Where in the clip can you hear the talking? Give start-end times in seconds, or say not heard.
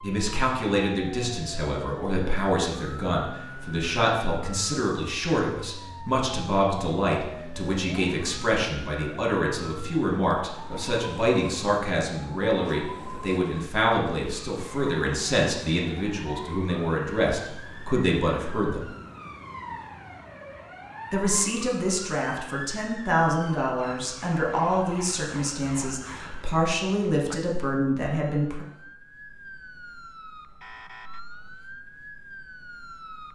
0.0-18.9, 21.1-28.6.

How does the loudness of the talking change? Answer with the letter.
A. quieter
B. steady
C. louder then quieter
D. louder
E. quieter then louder
B.